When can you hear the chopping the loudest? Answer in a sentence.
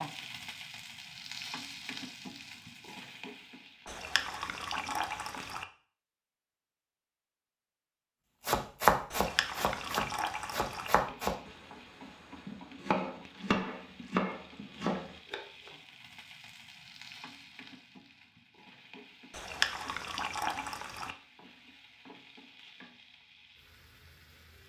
The volume of the chopping peaks at 9 seconds.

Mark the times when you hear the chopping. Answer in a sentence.
You can hear the chopping from 8.4 to 11.5 s and from 12.4 to 15.7 s.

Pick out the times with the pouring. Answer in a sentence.
You can hear the pouring from 3.9 to 5.7 s, from 9.1 to 10.9 s and from 19.3 to 21.1 s.